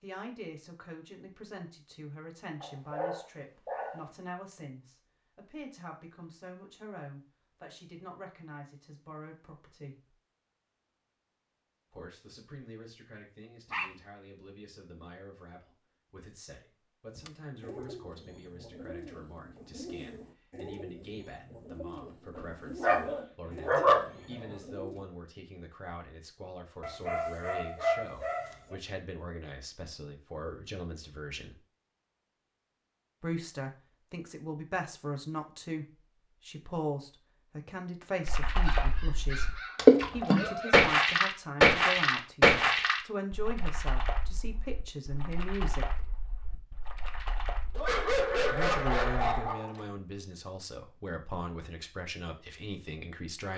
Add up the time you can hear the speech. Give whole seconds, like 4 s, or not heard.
48 s.